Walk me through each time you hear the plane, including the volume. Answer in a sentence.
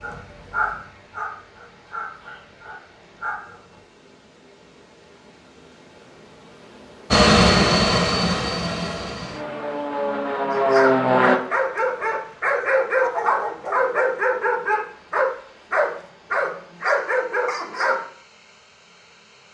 You can hear the plane from 7.1 to 11.4 s, getting quieter then louder.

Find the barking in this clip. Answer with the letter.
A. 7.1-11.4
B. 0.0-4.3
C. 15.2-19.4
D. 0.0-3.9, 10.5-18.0
D.